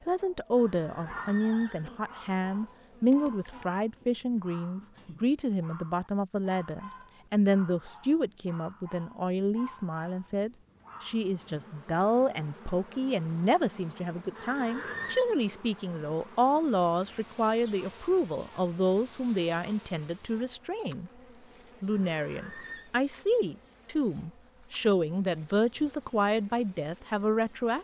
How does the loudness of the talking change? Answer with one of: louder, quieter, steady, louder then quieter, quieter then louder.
steady.